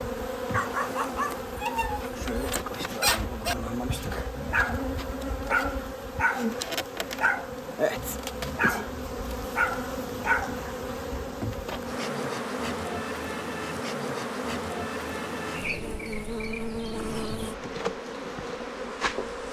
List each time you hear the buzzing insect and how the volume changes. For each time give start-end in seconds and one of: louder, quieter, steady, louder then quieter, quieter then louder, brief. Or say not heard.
0.0-19.4 steady.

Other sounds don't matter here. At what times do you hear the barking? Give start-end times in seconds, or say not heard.
0.5-10.7.